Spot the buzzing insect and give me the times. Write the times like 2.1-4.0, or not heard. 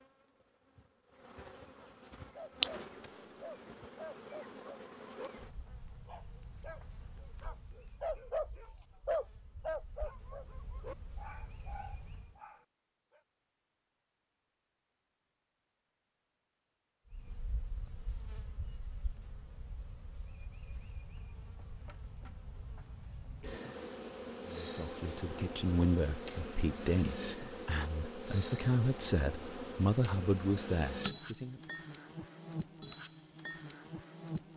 0.0-12.4, 17.1-34.5.